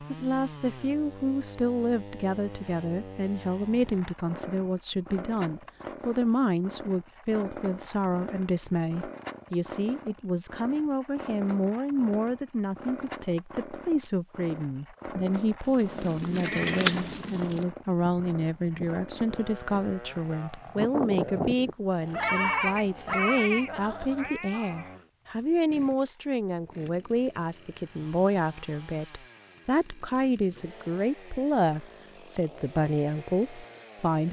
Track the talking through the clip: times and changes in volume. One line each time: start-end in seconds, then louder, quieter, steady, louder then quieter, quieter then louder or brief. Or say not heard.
0.0-34.2 steady.